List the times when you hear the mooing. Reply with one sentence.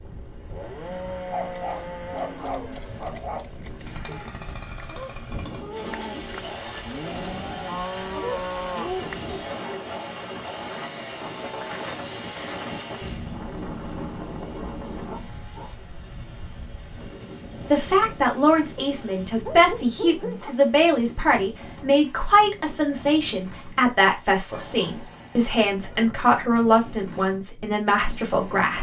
The mooing can be heard from 1.4 to 9.3 s.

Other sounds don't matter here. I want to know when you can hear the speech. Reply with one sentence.
The speech can be heard from 17.7 to 28.7 s.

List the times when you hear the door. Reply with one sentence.
The door can't be heard in this clip.